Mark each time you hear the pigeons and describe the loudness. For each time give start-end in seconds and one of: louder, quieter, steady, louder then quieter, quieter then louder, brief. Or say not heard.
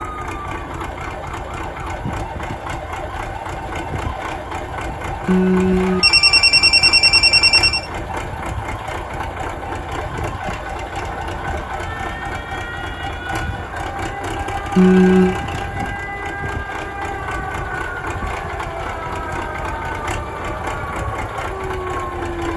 not heard.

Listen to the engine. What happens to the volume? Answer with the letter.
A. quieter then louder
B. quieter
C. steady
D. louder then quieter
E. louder
C.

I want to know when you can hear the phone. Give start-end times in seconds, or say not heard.
5.2-7.8, 14.8-15.3.